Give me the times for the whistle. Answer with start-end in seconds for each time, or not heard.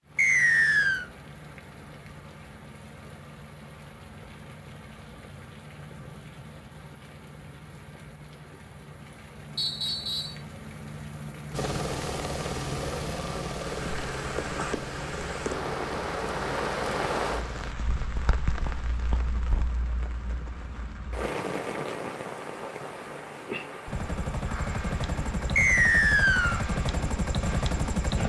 0.1-1.1, 9.6-10.4, 25.6-26.6.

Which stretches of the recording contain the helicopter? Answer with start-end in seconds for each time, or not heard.
11.5-17.8, 23.9-28.2.